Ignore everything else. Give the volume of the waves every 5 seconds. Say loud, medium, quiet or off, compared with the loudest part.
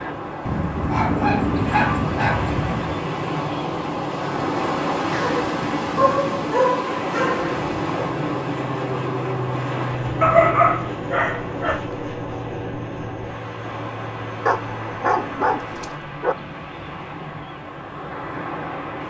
loud, loud, medium, medium.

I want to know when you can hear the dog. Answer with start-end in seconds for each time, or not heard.
0.5-3.0, 5.1-7.5, 10.2-11.8, 14.4-16.4.